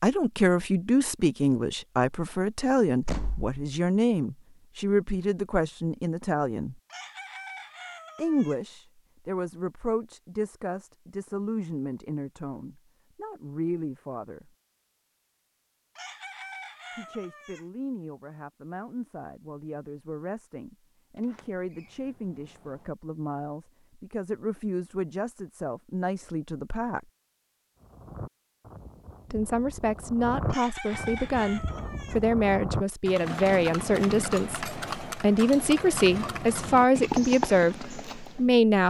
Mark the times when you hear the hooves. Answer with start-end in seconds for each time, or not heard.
27.8-38.4.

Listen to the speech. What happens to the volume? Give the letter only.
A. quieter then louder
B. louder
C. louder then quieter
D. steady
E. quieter
A.